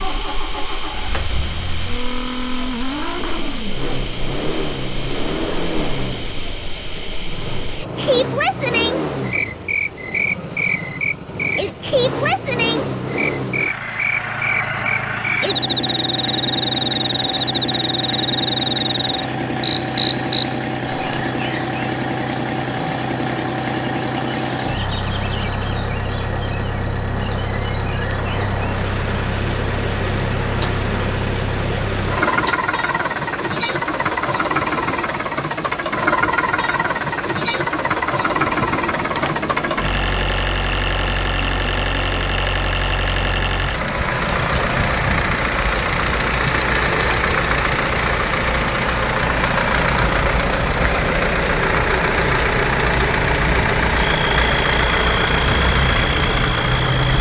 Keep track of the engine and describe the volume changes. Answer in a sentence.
The volume of the engine goes up.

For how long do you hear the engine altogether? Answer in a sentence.
You can hear the engine for 57 seconds altogether.